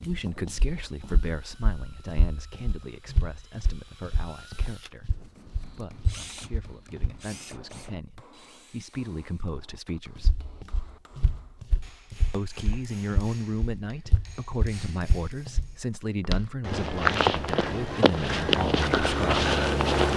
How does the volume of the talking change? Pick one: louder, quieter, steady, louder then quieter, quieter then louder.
quieter then louder.